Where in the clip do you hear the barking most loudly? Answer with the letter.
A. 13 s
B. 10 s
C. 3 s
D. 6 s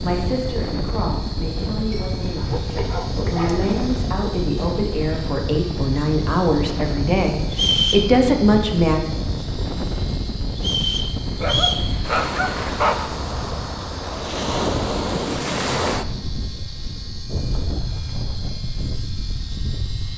A.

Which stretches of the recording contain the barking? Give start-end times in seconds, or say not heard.
1.8-3.8, 11.4-13.1.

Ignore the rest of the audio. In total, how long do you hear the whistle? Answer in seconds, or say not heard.
2 s.